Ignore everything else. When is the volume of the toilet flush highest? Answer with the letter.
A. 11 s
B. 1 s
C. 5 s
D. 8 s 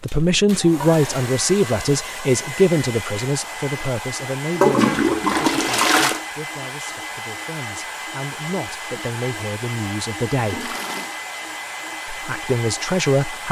C.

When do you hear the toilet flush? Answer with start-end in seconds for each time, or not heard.
0.1-1.3, 4.5-6.2, 10.3-11.1.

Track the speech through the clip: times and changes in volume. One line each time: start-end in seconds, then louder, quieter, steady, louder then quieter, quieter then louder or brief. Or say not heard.
0.0-10.7 quieter then louder
12.1-13.4 brief.